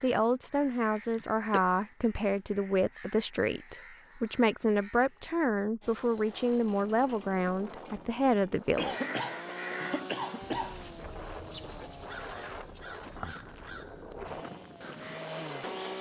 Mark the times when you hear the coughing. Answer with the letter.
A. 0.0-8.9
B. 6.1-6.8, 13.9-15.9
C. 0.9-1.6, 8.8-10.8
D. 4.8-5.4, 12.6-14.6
C.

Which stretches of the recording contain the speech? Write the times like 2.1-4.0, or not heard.
0.0-8.9.